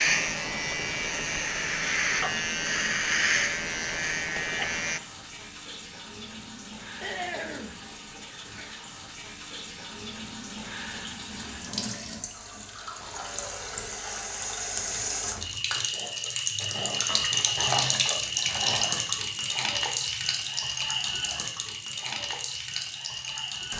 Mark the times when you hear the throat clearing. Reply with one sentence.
The throat clearing can be heard from 7.0 to 7.8 s.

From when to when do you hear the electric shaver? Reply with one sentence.
You can hear the electric shaver from 0.0 to 5.0 s.